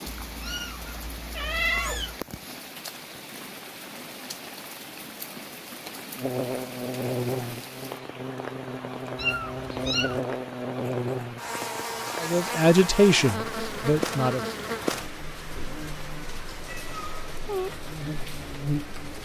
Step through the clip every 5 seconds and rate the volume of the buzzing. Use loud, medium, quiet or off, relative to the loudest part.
off, loud, loud, medium.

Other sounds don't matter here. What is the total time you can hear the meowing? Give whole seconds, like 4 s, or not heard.
4 s.